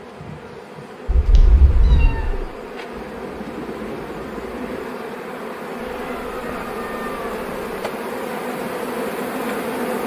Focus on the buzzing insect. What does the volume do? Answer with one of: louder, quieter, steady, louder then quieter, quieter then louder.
louder.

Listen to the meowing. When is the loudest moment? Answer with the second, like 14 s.
2 s.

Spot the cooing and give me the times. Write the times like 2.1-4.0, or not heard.
2.9-4.8.